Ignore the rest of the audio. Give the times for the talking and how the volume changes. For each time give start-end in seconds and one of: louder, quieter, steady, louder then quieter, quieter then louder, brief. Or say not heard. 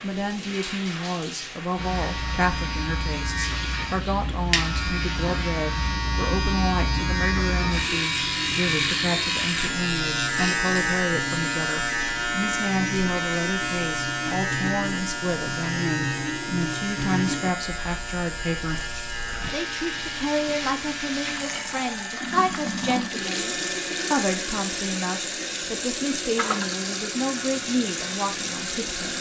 0.0-29.1 steady.